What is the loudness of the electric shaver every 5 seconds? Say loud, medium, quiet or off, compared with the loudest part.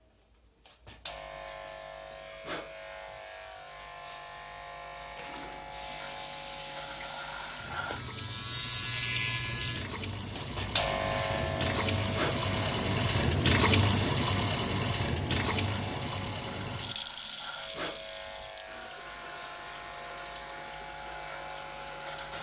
medium, loud, loud, medium, medium.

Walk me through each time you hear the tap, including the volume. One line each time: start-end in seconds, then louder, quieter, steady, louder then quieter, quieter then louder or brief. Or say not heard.
4.9-22.3 louder then quieter.